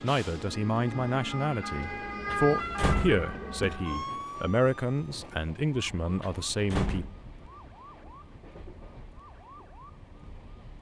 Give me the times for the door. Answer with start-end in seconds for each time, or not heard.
2.3-3.8, 6.2-7.2.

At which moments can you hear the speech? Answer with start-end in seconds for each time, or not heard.
0.0-7.0.